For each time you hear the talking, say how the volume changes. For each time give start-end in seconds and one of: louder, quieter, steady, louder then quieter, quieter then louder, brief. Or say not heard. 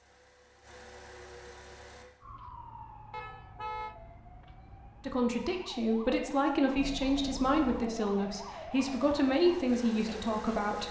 5.0-10.8 steady.